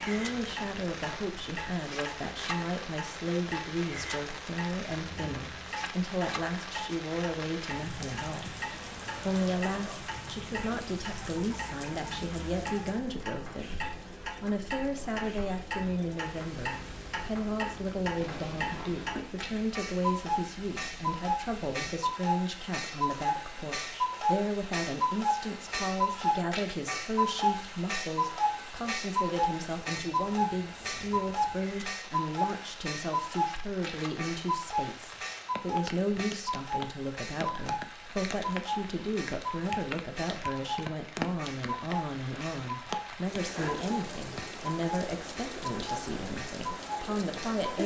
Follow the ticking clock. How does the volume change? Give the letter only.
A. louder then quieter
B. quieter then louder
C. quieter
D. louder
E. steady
A.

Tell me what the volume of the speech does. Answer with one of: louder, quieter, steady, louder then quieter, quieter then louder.
steady.